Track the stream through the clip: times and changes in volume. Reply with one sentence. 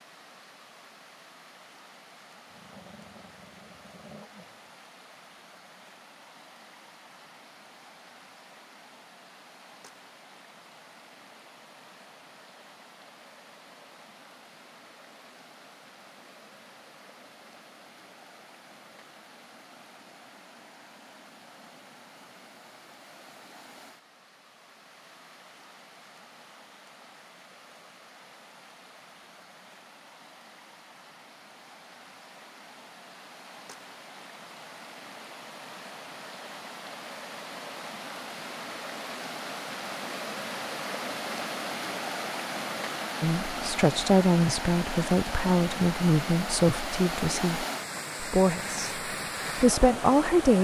You can hear the stream from 0.0 to 50.5 s, getting louder.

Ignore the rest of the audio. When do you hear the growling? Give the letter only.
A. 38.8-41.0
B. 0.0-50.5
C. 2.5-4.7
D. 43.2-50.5
C.